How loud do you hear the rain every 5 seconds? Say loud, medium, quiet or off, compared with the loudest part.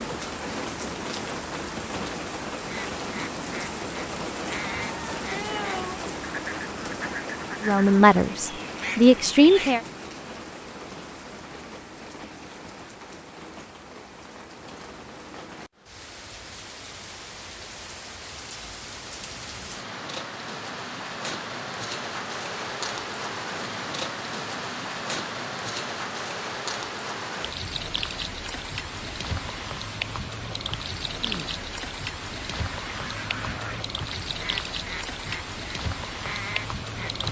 loud, loud, medium, medium, loud, loud, loud, loud.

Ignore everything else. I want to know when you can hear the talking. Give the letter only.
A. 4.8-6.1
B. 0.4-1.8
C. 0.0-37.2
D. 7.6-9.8
D.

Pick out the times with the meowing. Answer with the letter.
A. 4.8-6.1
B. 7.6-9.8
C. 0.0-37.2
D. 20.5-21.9
A.